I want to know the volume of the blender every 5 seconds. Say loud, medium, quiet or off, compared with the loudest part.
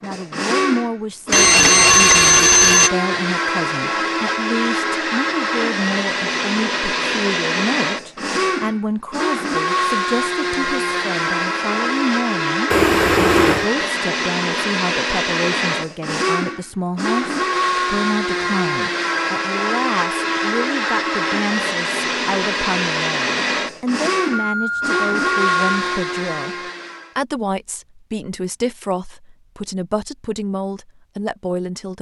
loud, loud, loud, loud, loud, loud, off.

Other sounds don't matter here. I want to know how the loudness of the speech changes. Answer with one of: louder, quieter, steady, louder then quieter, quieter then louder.
steady.